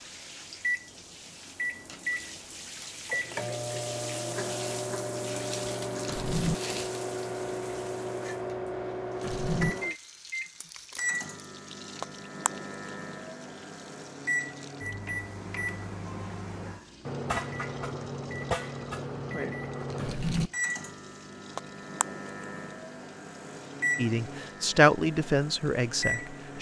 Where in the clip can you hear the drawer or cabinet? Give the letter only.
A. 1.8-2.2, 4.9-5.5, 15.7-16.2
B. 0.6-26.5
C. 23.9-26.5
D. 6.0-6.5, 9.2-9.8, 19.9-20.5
D.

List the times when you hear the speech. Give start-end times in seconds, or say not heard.
23.9-26.5.